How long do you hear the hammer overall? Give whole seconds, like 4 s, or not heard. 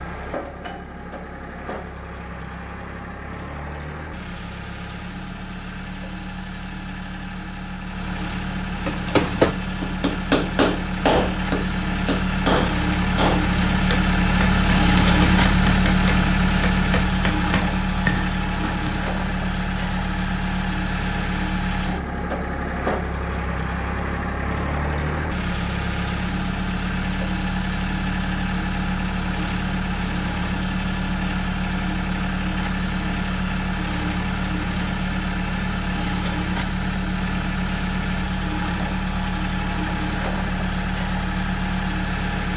10 s.